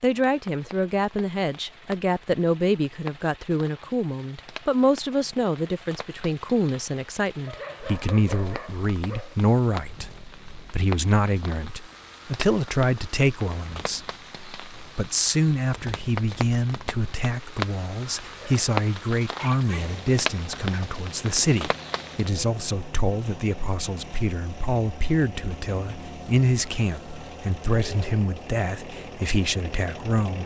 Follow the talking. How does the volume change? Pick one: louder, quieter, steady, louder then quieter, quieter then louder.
steady.